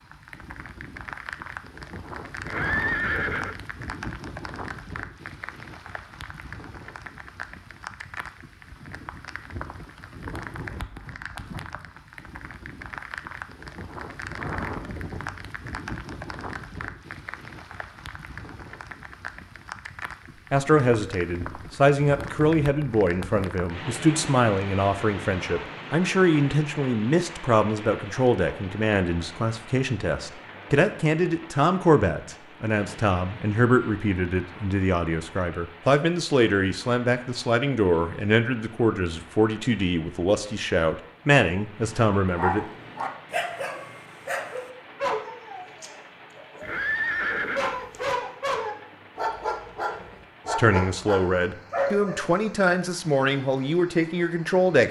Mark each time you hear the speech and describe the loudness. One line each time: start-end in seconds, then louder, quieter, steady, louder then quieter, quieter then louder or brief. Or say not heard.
20.5-42.6 steady
50.5-54.8 steady.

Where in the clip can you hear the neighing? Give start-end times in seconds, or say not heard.
2.5-3.5, 46.6-48.0.